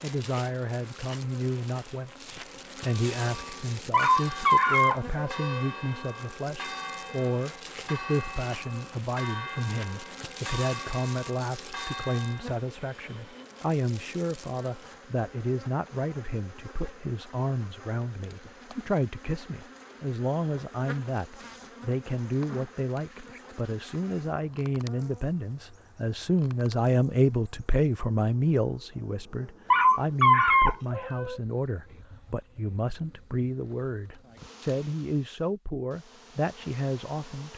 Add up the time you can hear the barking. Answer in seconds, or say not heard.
3 s.